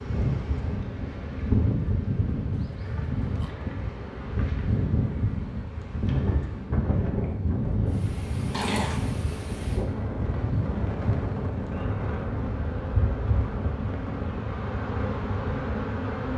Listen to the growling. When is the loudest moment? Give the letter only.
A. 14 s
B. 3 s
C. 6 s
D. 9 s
D.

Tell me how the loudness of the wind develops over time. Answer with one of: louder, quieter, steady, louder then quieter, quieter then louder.
steady.